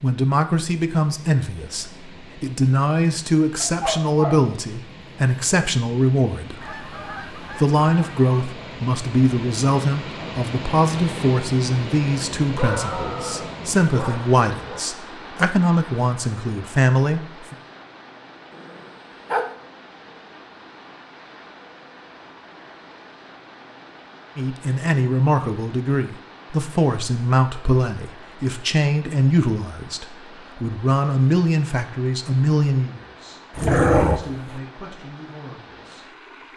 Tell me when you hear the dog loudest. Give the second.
34 s.